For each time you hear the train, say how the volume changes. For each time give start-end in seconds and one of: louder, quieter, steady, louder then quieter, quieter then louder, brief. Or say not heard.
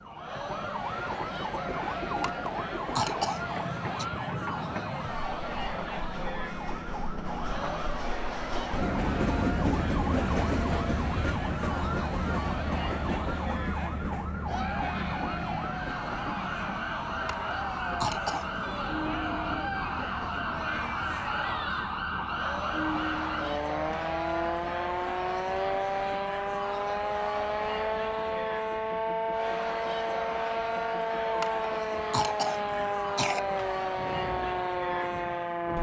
0.0-35.7 louder then quieter.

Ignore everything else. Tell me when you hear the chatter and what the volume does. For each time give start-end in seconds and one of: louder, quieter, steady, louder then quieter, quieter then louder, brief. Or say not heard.
0.0-35.7 steady.